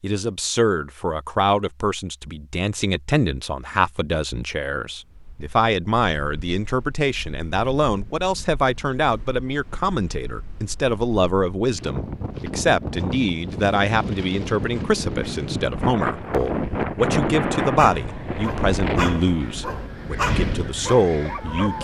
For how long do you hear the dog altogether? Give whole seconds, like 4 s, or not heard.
4 s.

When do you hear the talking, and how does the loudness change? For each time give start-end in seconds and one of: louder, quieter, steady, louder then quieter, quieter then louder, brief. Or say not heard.
0.0-21.7 steady.